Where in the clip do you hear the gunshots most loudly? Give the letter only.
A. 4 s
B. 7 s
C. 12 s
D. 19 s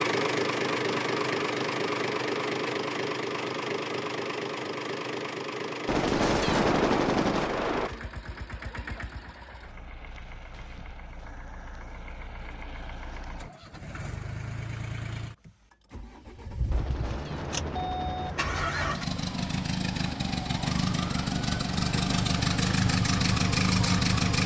B.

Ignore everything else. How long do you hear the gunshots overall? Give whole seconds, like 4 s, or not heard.
4 s.